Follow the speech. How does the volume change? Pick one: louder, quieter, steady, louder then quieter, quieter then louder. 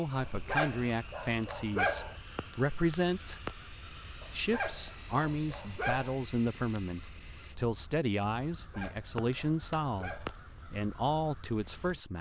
steady.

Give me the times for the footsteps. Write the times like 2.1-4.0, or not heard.
not heard.